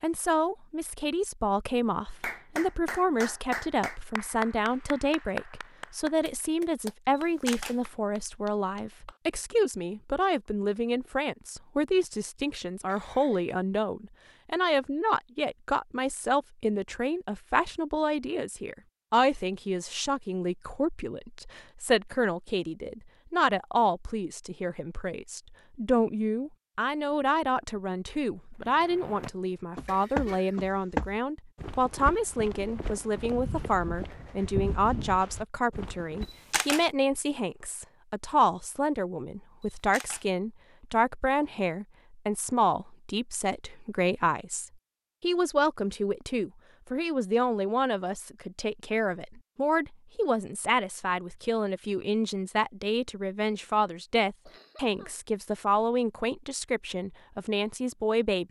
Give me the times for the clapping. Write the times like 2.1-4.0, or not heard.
2.2-9.2.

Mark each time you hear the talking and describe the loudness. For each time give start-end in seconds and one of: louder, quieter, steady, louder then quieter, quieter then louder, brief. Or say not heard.
0.0-58.4 steady.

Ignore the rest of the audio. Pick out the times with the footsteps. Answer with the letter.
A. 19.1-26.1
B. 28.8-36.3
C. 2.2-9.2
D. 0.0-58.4
B.